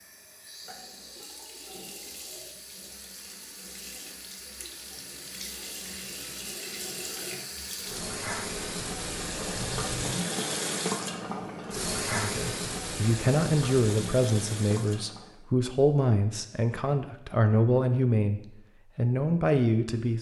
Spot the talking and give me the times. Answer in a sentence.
The talking can be heard from 12.1 to 20.1 s.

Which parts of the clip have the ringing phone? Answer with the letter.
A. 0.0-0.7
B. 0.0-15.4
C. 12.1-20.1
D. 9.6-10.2
D.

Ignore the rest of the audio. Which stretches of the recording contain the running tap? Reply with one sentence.
The running tap can be heard from 0.0 to 15.4 s.